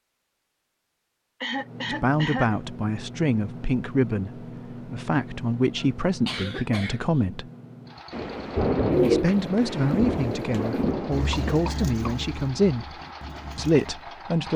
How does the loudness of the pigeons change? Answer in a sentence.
The loudness of the pigeons goes up, then down.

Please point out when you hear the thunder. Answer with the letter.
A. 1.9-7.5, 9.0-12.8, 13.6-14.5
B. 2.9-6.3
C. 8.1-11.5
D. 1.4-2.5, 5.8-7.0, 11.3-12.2
C.